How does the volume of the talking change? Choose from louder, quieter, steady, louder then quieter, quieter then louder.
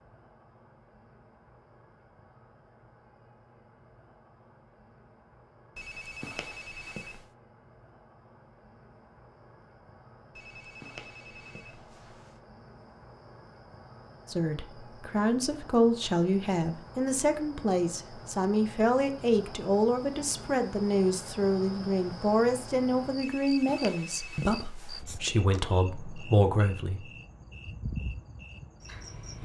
steady.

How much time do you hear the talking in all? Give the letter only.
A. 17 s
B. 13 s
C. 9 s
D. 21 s
B.